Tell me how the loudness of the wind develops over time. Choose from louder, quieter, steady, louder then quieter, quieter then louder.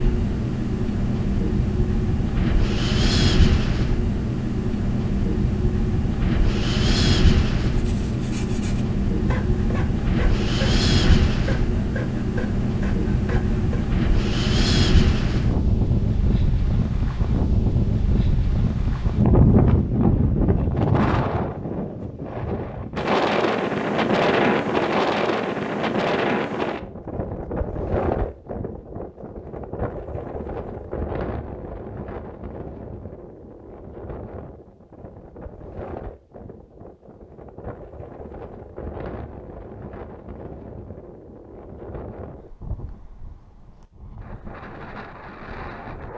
quieter.